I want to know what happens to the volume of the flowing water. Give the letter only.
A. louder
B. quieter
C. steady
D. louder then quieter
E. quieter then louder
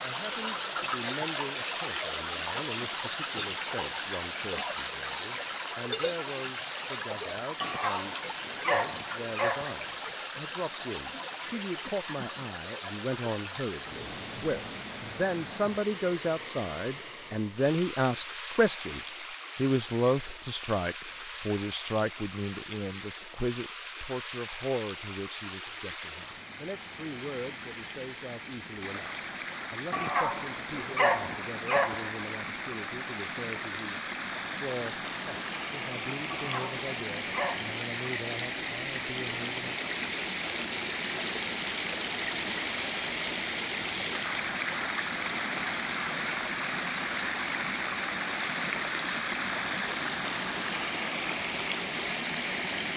E.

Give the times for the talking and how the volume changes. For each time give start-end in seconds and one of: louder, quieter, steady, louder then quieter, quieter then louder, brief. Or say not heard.
0.0-39.8 louder then quieter.